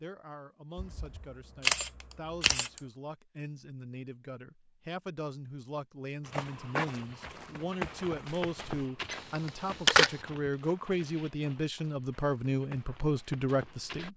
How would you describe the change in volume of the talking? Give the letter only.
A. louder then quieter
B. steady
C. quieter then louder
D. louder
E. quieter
D.